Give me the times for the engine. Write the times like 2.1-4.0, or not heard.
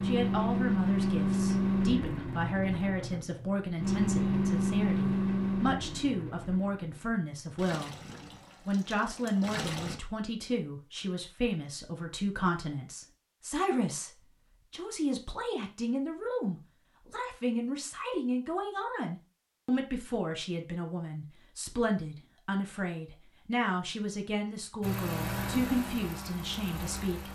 0.0-10.0, 24.8-27.2.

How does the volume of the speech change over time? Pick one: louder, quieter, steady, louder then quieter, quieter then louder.
steady.